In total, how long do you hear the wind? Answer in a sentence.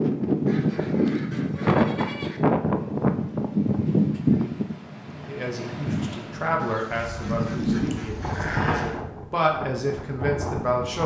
You can hear the wind for 11 seconds altogether.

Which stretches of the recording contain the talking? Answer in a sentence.
You can hear the talking from 5.2 to 11.0 s.